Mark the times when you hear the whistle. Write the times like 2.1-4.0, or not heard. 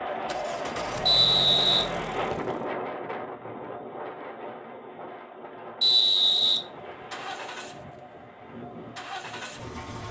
1.1-2.5, 5.8-6.6.